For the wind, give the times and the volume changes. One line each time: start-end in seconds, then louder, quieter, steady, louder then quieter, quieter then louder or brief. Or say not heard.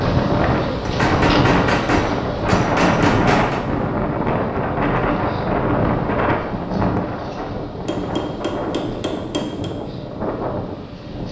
0.0-11.2 quieter.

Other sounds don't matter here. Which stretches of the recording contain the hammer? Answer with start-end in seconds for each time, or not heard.
0.8-3.6, 7.8-9.7.